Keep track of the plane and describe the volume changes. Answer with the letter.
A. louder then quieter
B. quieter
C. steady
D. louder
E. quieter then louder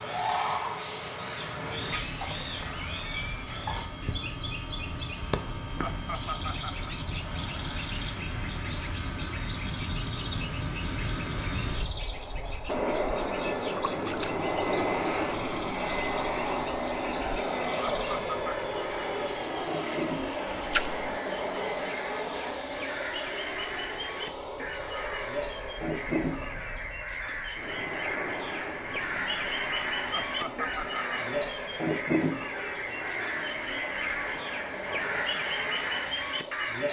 A.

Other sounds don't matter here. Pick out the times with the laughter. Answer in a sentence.
You can hear the laughter from 5.8 to 6.9 s, from 17.9 to 18.6 s and from 30.1 to 31.0 s.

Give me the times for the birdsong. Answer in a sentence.
The birdsong can be heard from 0.0 to 36.8 s.